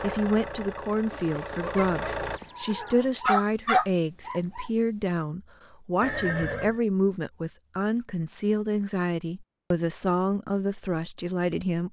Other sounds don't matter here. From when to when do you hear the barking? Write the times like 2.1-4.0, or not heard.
3.1-5.1.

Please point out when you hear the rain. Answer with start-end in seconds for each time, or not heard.
not heard.